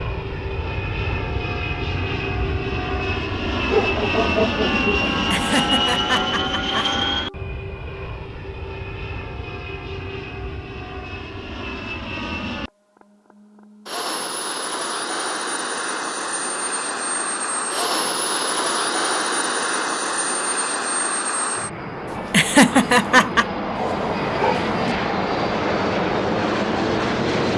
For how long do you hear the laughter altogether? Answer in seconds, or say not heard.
3 s.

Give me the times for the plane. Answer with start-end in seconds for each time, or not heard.
0.0-27.5.